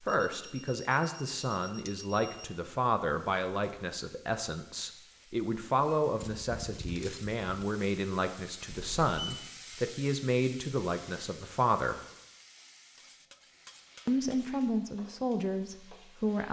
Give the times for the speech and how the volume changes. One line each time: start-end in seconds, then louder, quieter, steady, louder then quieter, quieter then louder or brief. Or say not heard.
0.0-12.0 steady
14.1-16.4 brief.